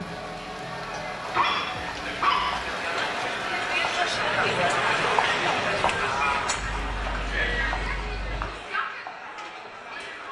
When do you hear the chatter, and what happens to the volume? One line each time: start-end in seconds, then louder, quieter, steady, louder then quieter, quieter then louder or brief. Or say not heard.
0.0-10.2 louder then quieter.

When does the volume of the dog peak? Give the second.
2 s.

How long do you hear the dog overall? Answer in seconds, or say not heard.
3 s.